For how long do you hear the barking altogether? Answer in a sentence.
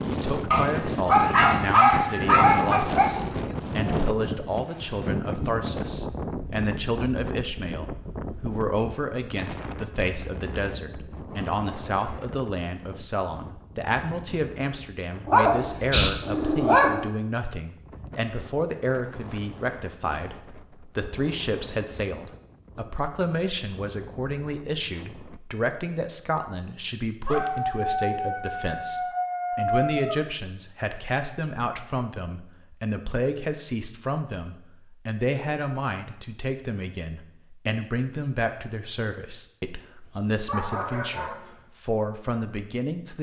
The barking can be heard for 9 seconds in total.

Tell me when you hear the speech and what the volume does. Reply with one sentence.
You can hear the speech from 0.1 to 43.1 s, at a steady volume.